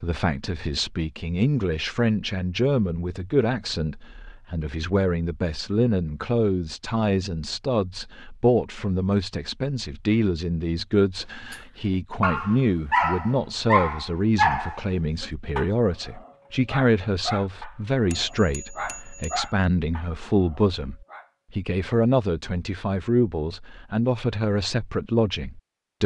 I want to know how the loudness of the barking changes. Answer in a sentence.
The volume of the barking goes down.